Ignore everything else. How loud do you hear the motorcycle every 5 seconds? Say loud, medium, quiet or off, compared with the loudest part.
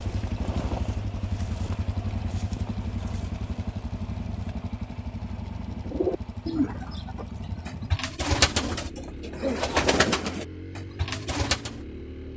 loud, medium, medium.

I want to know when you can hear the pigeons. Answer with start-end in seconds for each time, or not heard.
5.7-11.8.